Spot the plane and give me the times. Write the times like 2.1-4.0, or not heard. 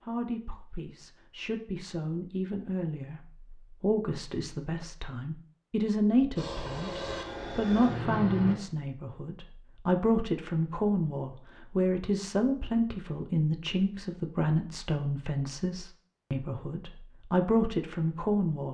6.3-8.6.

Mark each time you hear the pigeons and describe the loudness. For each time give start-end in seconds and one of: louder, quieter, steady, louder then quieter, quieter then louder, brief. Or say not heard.
not heard.